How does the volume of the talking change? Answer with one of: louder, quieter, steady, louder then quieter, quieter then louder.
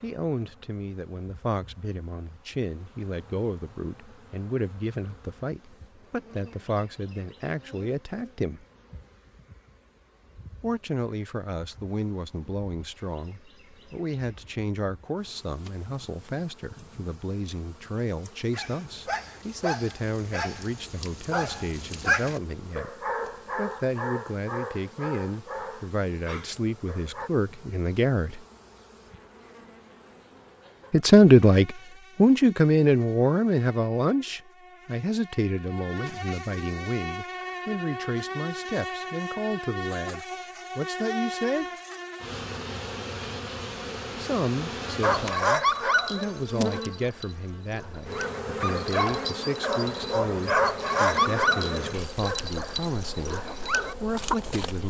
louder then quieter.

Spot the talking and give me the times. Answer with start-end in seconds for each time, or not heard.
0.0-8.7, 10.6-28.4, 30.9-41.6, 44.1-54.8.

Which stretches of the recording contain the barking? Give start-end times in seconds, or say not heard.
17.9-27.3, 45.0-54.4.